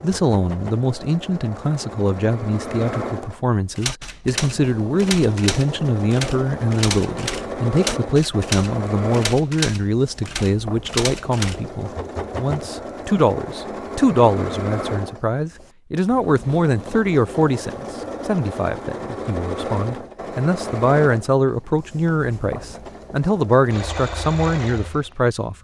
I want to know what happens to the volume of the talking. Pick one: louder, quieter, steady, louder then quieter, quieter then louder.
steady.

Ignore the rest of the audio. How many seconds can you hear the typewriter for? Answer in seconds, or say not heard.
8 s.